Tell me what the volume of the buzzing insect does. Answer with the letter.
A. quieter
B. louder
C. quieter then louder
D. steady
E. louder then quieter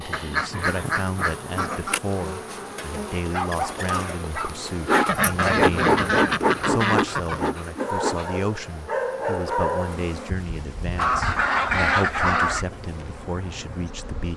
E.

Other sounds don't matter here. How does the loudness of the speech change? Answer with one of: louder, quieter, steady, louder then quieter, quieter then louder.
steady.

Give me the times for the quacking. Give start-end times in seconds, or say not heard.
0.1-2.0, 5.0-7.5, 10.9-12.7.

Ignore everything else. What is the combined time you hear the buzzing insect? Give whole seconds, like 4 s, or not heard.
14 s.